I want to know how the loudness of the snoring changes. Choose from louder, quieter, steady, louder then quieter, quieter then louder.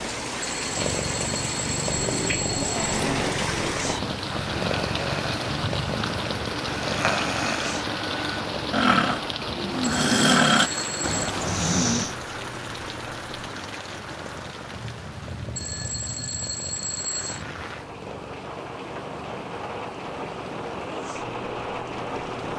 louder.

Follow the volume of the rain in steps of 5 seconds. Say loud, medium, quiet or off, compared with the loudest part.
loud, loud, loud, medium, loud.